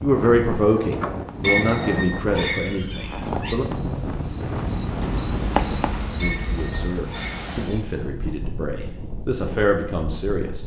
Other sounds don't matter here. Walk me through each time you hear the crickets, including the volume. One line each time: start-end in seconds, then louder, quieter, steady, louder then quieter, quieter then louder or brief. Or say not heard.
0.0-8.0 louder then quieter.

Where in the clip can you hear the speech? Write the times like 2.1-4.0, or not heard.
0.0-3.6, 6.2-10.6.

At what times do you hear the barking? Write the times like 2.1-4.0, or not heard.
1.4-3.5, 6.2-8.1.